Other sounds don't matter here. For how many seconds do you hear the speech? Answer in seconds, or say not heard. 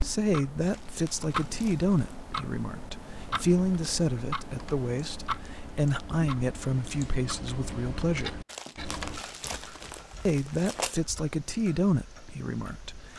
11 s.